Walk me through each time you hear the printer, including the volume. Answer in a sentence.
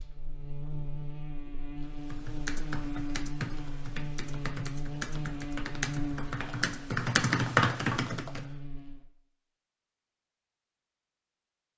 The printer can't be heard in this clip.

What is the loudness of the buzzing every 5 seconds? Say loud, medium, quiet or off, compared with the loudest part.
loud, loud, off.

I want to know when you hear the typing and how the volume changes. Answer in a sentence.
The typing can be heard from 1.8 to 8.5 s, getting louder.